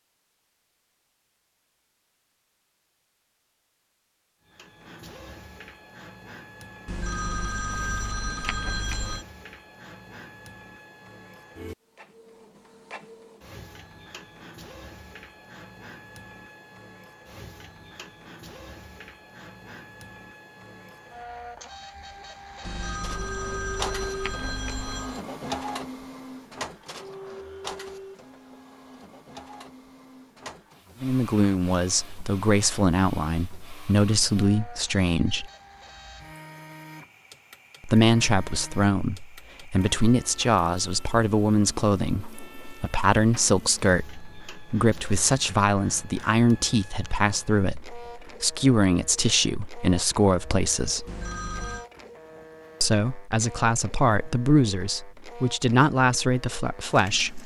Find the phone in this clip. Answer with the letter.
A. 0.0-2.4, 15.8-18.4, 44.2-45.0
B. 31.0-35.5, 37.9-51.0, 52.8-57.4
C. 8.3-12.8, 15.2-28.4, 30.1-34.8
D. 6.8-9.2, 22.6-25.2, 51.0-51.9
D.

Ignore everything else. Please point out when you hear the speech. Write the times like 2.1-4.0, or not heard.
31.0-35.5, 37.9-51.0, 52.8-57.4.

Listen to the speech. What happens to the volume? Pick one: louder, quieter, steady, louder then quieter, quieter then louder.
steady.